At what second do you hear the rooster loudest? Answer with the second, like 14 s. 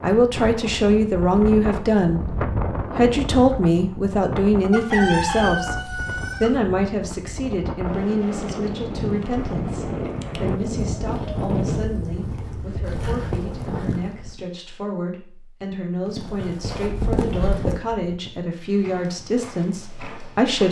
5 s.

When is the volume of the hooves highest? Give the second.
17 s.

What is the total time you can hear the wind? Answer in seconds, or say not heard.
14 s.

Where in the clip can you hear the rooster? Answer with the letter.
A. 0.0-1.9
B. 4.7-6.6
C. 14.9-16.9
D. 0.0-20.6
B.